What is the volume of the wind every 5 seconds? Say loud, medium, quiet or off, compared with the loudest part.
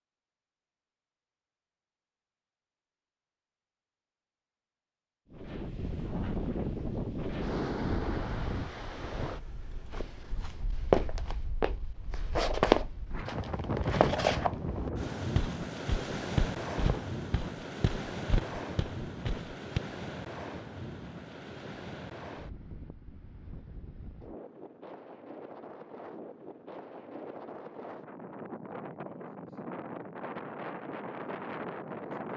off, loud, loud, loud, medium, medium, loud.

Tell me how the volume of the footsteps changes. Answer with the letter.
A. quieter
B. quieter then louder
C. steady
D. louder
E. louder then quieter
A.